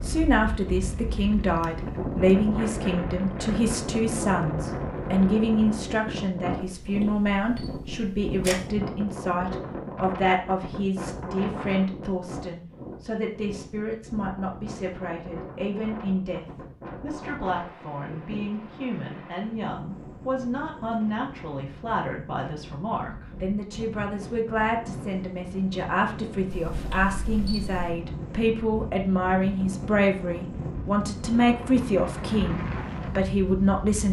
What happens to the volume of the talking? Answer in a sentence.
The loudness of the talking goes down, then up.